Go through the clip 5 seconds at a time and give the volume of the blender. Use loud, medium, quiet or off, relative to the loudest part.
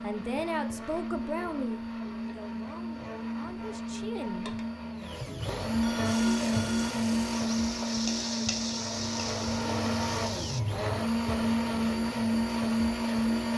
medium, loud, loud.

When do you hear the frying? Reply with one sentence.
You can hear the frying from 6.0 to 10.7 s.